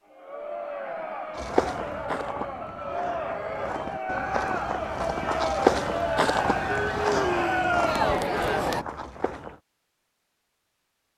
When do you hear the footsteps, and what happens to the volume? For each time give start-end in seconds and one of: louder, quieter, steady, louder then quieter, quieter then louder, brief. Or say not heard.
1.4-9.6 louder then quieter.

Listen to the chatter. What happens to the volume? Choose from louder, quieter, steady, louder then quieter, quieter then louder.
louder.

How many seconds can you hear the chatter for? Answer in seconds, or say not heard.
9 s.